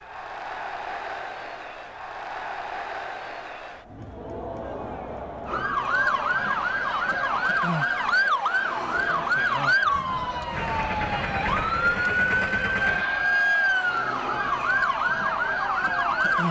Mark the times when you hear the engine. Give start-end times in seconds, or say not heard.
10.5-13.1.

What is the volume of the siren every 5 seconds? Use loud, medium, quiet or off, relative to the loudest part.
off, loud, loud, loud.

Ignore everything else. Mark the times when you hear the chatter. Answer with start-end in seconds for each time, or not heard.
0.0-16.4.